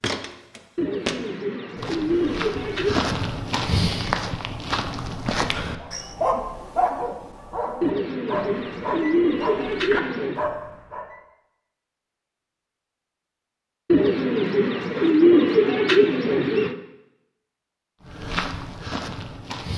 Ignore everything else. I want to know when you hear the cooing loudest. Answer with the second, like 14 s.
15 s.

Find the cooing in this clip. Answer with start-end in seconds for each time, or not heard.
0.8-3.1, 7.8-10.4, 13.9-16.8.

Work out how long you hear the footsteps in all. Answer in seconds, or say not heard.
8 s.